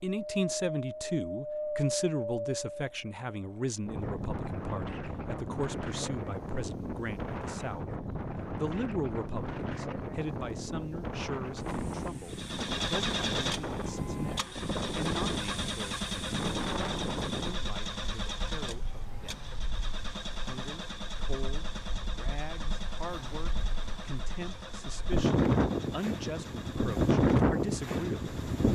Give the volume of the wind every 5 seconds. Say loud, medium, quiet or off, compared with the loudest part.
medium, medium, medium, medium, quiet, loud.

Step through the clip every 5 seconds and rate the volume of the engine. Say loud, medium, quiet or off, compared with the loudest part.
off, off, loud, loud, medium, medium.